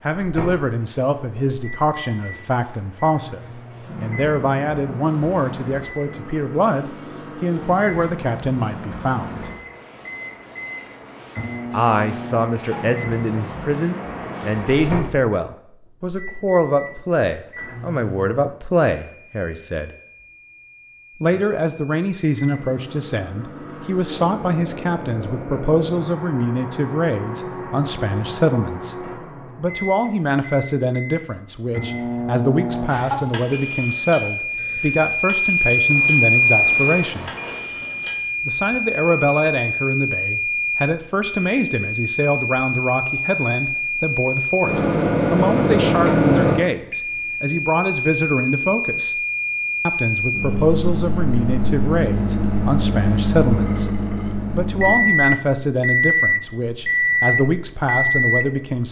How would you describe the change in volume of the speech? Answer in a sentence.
The loudness of the speech stays about the same.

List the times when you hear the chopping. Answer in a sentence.
You can't hear the chopping here.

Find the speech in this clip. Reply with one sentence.
You can hear the speech from 0.1 to 9.5 s, from 11.7 to 19.9 s, from 21.2 to 37.3 s, from 38.5 to 49.2 s and from 49.9 to 58.8 s.